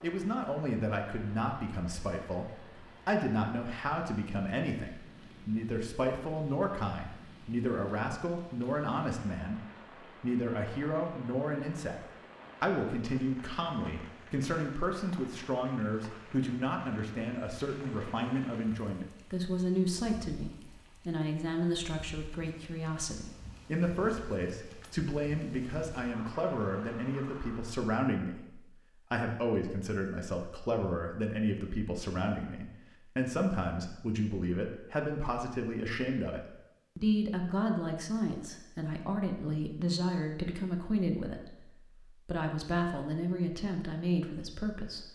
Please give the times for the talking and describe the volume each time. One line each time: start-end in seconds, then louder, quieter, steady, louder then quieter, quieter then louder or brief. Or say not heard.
0.0-45.1 steady.